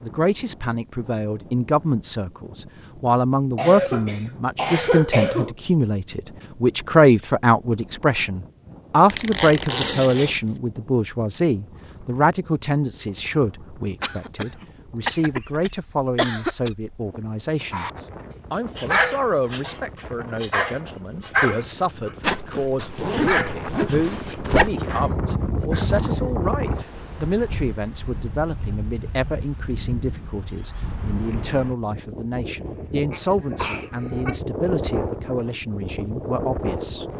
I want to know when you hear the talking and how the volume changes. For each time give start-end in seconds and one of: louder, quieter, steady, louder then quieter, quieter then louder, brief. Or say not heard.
0.0-37.0 quieter.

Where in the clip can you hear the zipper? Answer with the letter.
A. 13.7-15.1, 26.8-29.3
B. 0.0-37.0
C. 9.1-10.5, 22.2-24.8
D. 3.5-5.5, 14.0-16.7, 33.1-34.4
C.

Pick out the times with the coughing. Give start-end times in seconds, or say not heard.
3.5-5.5, 14.0-16.7, 33.1-34.4.